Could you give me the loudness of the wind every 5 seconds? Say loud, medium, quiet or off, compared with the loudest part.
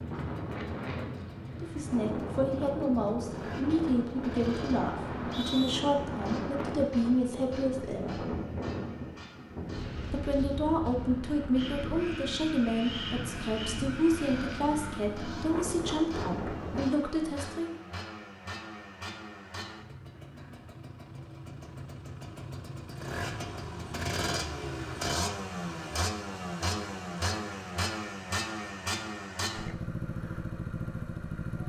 loud, loud, loud, loud, off, off, off.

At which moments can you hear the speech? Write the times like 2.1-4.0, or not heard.
1.6-8.2, 10.1-17.8.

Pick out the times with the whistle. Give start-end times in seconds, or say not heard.
5.0-5.8.